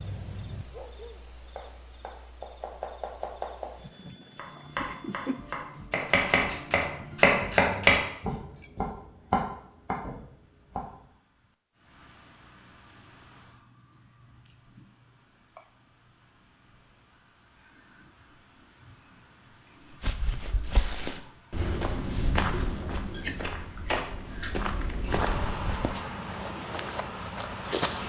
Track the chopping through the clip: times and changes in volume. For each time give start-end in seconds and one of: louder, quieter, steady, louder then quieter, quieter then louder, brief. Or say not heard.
1.6-11.1 louder then quieter.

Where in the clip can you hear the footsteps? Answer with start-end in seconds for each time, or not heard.
20.0-26.0.